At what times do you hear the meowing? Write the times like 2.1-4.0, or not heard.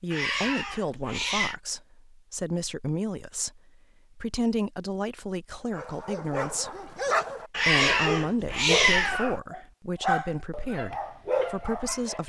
0.1-1.6, 7.5-9.4.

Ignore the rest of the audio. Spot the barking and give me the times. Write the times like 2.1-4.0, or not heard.
5.7-12.2.